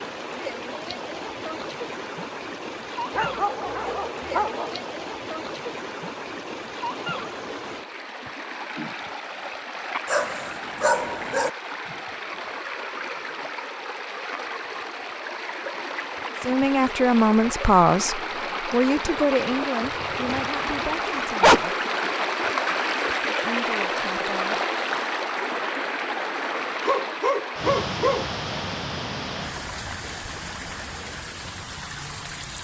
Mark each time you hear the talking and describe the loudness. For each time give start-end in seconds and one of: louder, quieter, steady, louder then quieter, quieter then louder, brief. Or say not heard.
16.4-21.9 quieter
23.4-24.6 brief.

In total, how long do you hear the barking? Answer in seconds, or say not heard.
6 s.